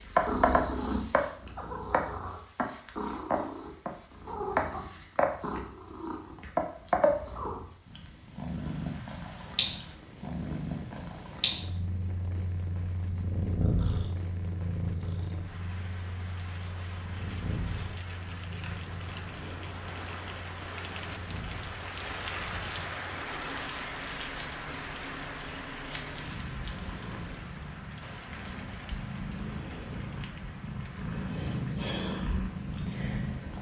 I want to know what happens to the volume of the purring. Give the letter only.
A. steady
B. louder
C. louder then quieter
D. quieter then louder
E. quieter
D.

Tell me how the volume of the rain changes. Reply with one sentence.
The loudness of the rain goes up, then down.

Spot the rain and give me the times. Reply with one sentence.
The rain can be heard from 8.4 to 33.5 s.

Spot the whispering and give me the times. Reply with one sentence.
The whispering can't be heard in this clip.